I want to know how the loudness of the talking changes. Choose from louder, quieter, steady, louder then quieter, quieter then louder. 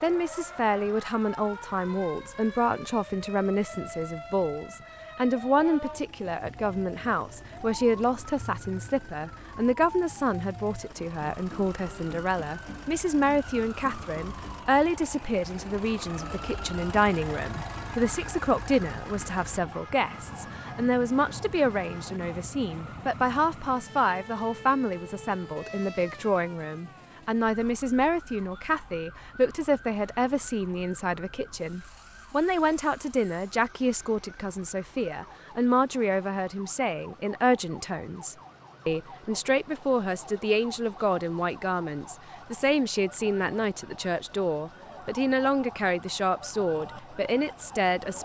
steady.